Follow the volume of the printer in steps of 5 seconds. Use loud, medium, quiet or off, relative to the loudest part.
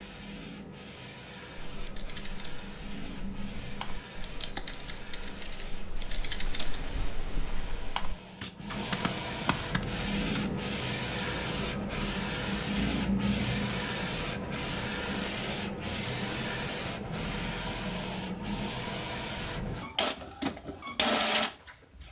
quiet, medium, loud, loud, loud.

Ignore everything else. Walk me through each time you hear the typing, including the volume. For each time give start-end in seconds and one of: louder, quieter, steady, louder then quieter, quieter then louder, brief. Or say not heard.
1.6-10.5 louder.